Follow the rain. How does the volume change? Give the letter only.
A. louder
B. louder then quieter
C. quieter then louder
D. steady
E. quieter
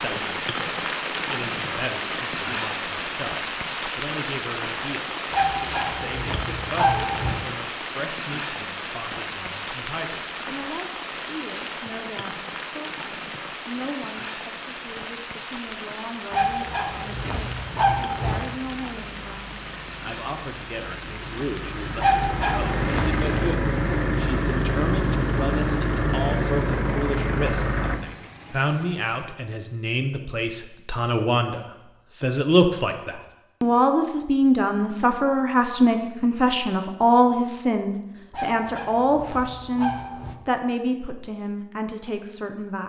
E.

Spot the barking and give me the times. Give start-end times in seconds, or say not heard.
5.3-7.4, 16.3-18.4, 22.0-23.2, 38.3-40.4.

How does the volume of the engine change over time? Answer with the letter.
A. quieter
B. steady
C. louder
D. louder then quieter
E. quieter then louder
C.